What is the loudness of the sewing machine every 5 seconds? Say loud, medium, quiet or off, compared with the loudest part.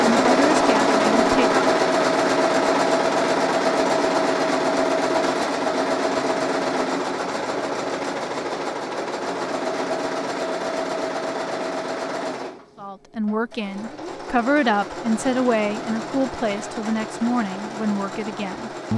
loud, medium, medium, quiet.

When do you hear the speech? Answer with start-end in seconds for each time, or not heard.
0.1-1.6, 12.8-18.9.